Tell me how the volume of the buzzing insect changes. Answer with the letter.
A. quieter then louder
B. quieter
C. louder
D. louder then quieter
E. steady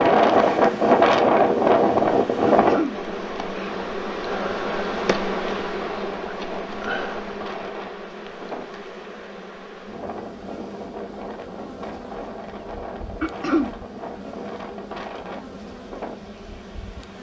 B.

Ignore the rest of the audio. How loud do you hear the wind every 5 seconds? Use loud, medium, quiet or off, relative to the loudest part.
loud, quiet, quiet, quiet.